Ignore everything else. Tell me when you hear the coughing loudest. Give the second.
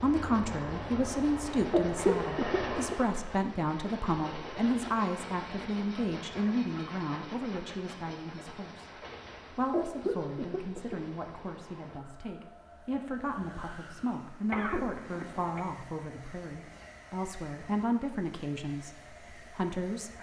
2 s.